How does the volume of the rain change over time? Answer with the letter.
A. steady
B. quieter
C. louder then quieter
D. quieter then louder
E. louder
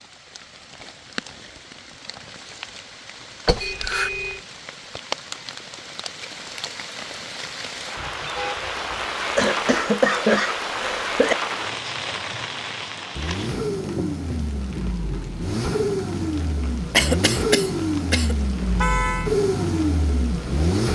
C.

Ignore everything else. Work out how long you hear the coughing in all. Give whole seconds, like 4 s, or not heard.
4 s.